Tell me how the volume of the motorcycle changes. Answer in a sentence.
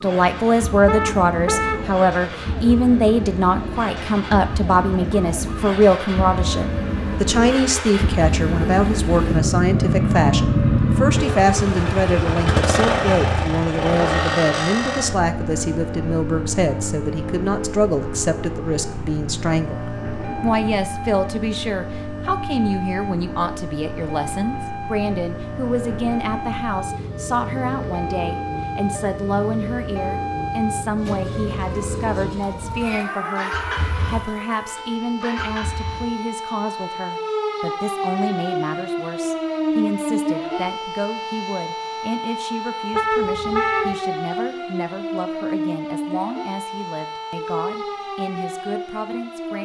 The volume of the motorcycle goes up, then down.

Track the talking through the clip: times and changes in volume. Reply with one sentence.
You can hear the talking from 0.0 to 49.6 s, getting quieter.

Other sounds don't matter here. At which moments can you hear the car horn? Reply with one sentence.
You can hear the car horn from 0.8 to 1.9 s and from 42.9 to 44.0 s.